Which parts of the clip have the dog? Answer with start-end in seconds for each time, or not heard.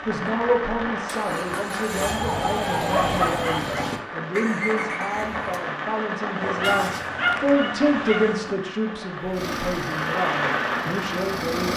2.0-4.0, 6.4-8.5.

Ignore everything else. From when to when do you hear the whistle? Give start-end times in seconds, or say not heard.
not heard.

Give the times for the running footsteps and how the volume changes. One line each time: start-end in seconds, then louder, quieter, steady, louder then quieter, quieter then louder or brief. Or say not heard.
not heard.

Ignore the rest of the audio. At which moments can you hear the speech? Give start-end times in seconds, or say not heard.
0.0-11.7.